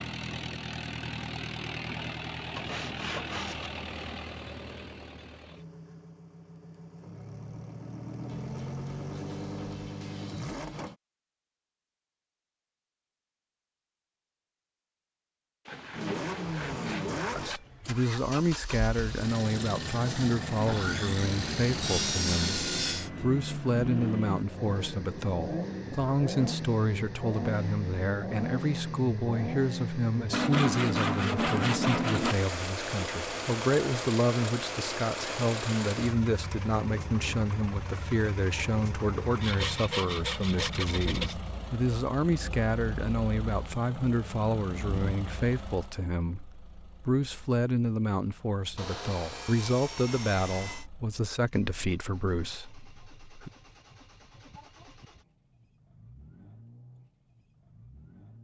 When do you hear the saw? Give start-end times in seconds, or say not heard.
2.5-3.7, 15.7-17.6, 20.6-23.1, 30.3-32.4, 39.4-41.4, 48.8-50.9.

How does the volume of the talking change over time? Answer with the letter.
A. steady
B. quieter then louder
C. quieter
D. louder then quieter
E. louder
A.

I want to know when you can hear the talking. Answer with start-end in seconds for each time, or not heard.
17.4-53.5.